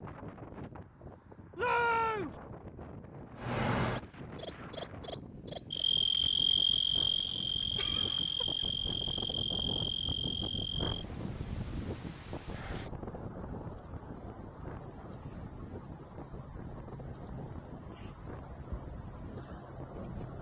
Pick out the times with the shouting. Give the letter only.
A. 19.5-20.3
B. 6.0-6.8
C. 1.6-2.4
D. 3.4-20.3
C.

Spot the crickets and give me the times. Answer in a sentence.
The crickets can be heard from 3.4 to 20.3 s.